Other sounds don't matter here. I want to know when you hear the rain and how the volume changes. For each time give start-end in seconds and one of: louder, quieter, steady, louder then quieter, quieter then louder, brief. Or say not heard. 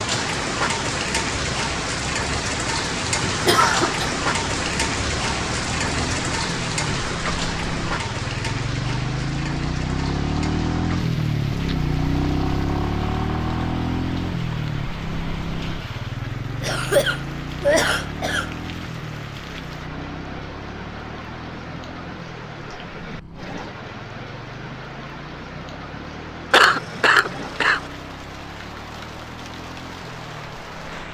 0.0-31.0 quieter.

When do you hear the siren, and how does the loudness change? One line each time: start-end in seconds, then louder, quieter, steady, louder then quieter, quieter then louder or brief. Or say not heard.
not heard.